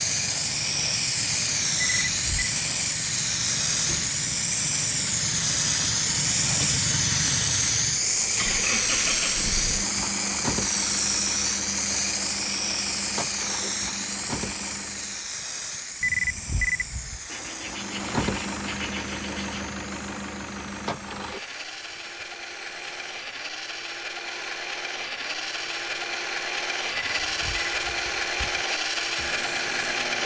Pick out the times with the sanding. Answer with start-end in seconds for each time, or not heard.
17.2-19.7.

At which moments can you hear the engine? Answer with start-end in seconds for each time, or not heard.
0.0-15.3, 17.6-30.2.